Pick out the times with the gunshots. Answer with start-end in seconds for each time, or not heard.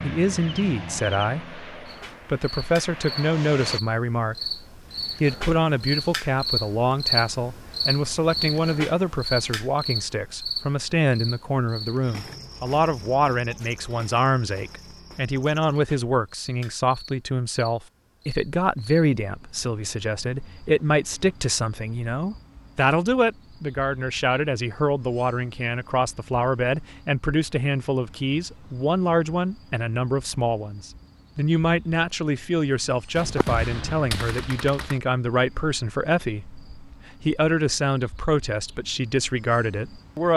33.1-35.0.